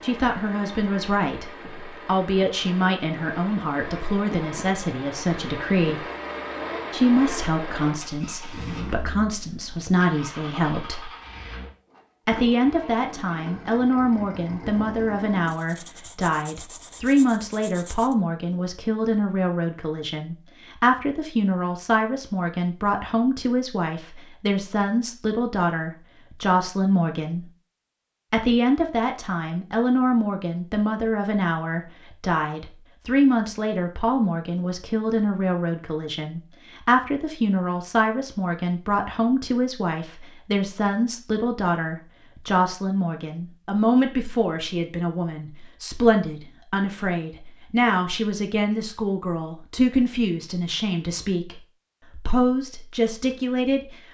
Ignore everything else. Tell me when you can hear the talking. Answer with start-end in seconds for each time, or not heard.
0.0-6.0, 6.9-11.1, 12.2-27.4, 28.3-54.0.